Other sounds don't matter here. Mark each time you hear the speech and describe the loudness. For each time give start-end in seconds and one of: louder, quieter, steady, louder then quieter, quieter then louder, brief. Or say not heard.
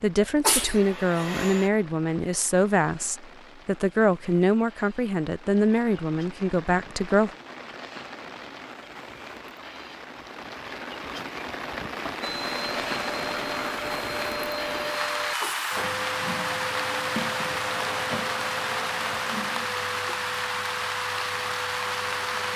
0.0-7.3 steady.